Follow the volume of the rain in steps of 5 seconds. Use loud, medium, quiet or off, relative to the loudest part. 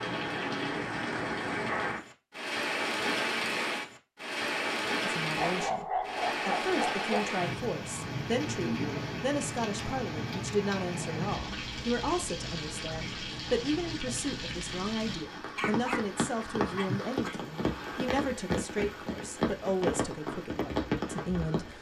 loud, loud, medium, loud, loud.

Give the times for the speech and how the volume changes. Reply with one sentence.
You can hear the speech from 5.0 to 21.7 s, at a steady volume.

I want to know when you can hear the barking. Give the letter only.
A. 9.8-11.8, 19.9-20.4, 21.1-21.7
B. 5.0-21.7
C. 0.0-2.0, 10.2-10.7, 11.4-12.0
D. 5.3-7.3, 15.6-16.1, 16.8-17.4
D.